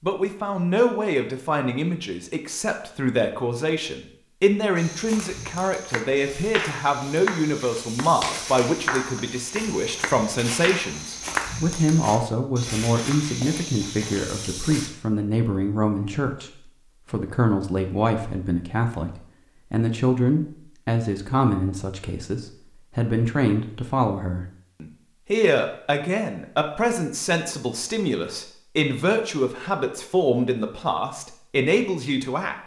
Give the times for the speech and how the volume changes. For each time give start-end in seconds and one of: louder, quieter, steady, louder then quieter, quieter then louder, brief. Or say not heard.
0.0-32.5 steady.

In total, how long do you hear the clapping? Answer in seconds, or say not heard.
6 s.